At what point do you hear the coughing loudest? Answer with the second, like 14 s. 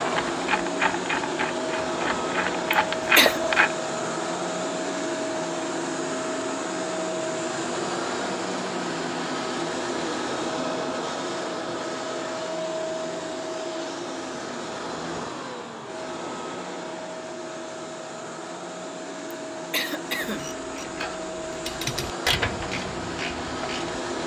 3 s.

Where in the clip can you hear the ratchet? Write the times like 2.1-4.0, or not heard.
0.0-3.8, 20.2-23.9.